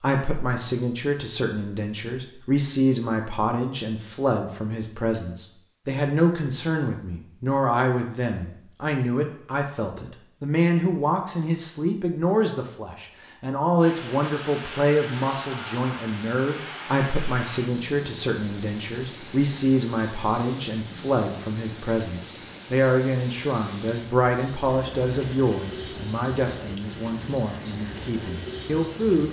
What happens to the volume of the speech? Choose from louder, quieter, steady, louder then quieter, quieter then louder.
steady.